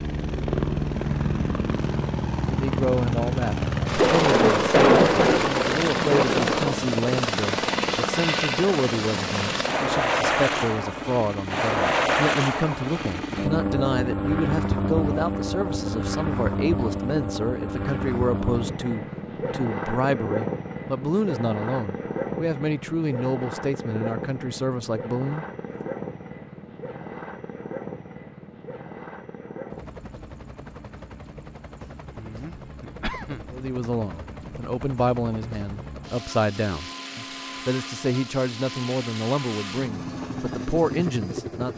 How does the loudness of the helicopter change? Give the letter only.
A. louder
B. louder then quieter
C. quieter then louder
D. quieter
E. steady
D.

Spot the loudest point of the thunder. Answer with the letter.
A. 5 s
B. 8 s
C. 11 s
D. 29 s
A.